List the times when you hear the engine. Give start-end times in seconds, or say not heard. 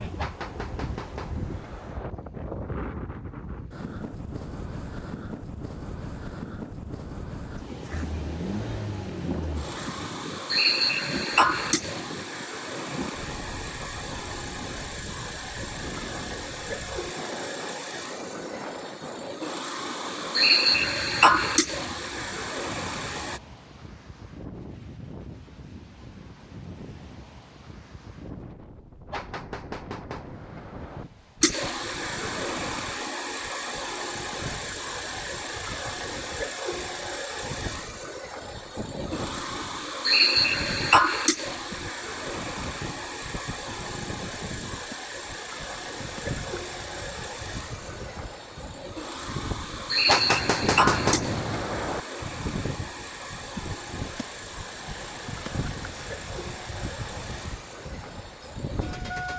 8.0-23.4, 31.4-59.3.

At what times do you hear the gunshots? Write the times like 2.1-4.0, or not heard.
0.1-2.1, 29.1-31.1, 50.0-52.0.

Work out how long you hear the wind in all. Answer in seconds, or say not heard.
59 s.